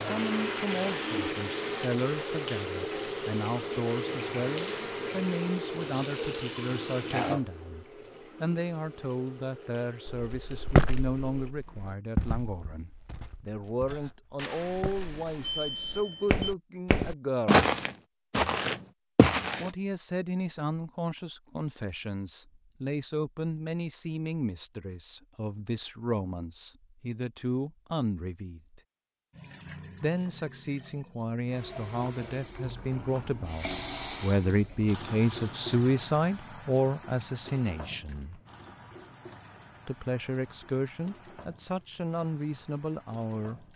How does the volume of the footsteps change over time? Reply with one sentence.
The volume of the footsteps goes down, then up.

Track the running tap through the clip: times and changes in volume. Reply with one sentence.
The running tap can be heard from 0.0 to 11.6 s, getting quieter; and from 29.3 to 43.7 s, getting louder then quieter.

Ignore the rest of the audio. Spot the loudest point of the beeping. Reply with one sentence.
The volume of the beeping peaks at 16 seconds.